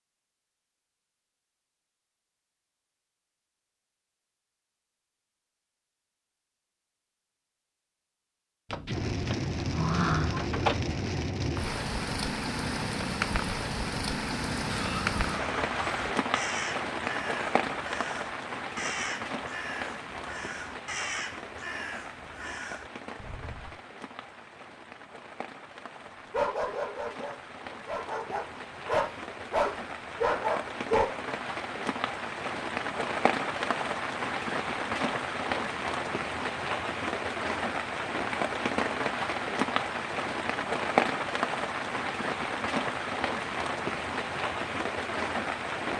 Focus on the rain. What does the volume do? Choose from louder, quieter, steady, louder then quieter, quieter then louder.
quieter then louder.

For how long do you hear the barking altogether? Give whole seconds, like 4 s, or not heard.
5 s.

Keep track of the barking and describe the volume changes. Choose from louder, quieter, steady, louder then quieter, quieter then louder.
louder.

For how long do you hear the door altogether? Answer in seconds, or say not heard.
2 s.